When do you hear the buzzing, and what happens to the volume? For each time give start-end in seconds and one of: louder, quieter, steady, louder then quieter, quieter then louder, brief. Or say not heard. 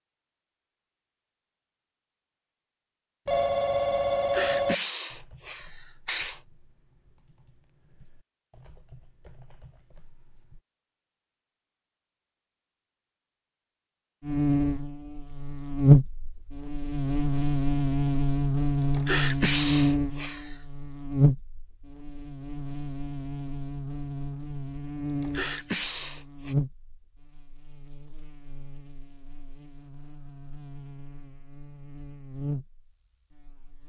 14.2-33.8 quieter.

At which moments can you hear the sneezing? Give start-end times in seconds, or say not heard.
4.0-6.4, 18.8-20.6, 25.1-26.6.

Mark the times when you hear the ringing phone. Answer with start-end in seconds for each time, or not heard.
3.2-4.8.